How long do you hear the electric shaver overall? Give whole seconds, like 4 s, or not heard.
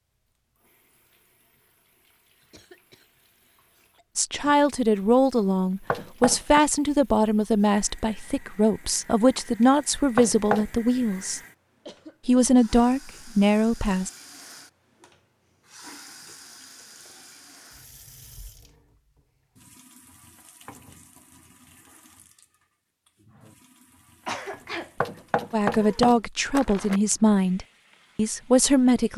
not heard.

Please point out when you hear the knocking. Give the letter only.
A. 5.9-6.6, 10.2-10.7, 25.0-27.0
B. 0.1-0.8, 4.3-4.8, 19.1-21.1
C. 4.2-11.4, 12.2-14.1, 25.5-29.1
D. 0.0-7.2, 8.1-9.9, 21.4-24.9
A.